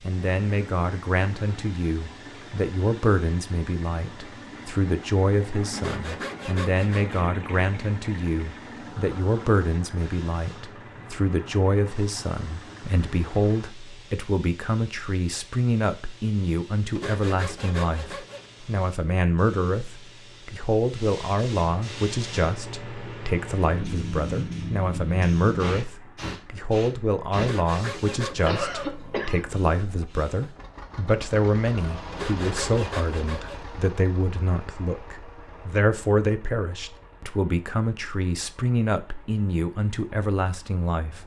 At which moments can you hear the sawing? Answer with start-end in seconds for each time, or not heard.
5.8-7.2, 16.9-18.5, 27.4-28.8, 32.1-33.6.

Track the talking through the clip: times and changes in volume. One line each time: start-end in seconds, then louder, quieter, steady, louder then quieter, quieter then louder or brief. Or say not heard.
0.0-41.2 steady.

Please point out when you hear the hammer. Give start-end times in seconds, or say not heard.
not heard.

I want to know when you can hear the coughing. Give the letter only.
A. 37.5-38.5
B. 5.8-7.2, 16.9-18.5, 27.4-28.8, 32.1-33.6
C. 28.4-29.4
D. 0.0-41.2
C.